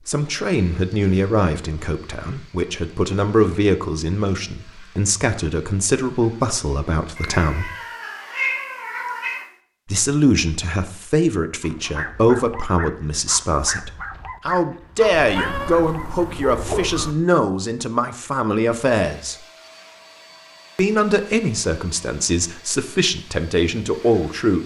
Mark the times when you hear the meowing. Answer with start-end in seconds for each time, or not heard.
7.2-9.5, 15.1-17.1.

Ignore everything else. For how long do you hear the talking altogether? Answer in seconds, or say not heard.
21 s.